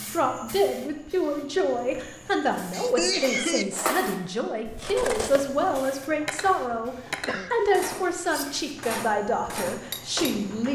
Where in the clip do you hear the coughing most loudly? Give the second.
3 s.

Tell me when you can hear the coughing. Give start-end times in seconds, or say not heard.
2.7-3.6, 6.5-7.6.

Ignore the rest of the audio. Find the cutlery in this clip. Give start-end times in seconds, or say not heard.
3.0-10.4.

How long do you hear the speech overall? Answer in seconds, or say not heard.
11 s.